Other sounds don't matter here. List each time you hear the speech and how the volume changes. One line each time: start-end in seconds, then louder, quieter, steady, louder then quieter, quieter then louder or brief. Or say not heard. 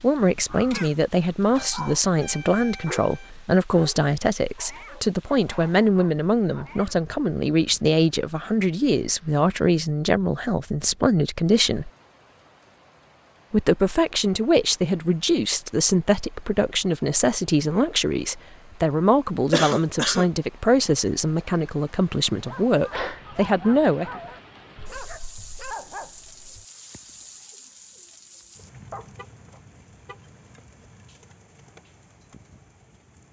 0.0-11.9 steady
13.5-24.1 steady.